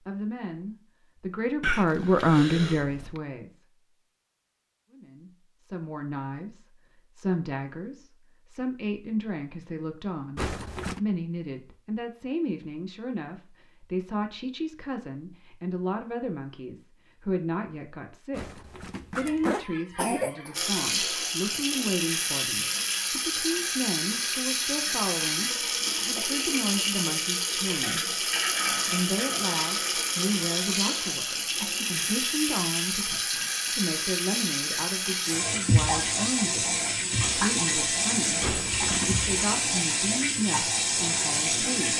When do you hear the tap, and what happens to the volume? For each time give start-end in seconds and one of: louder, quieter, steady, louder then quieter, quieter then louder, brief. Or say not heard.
20.5-41.9 steady.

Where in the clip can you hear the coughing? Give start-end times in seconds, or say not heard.
1.6-3.2, 19.2-20.6, 31.6-32.1.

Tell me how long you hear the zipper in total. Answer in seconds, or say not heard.
3 s.